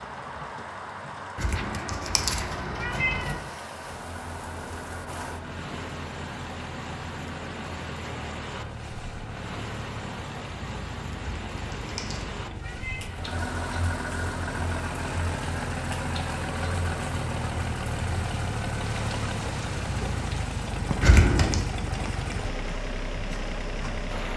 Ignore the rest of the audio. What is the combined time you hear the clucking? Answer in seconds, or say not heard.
not heard.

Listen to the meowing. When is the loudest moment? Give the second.
21 s.